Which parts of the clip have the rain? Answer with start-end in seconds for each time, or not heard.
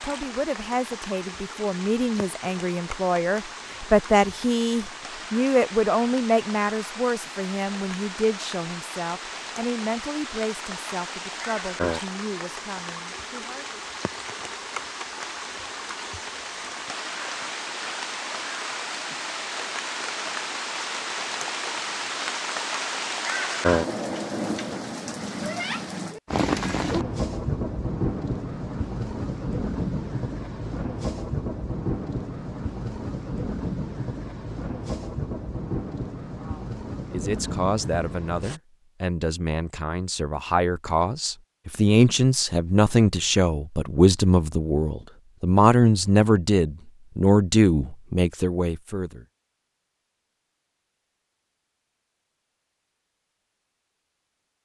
0.0-38.6.